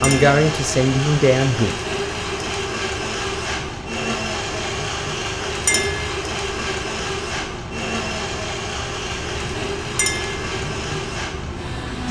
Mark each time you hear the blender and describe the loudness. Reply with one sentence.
You can hear the blender from 0.0 to 12.0 s, at a steady volume.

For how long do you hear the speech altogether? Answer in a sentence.
The speech can be heard for 2 seconds in total.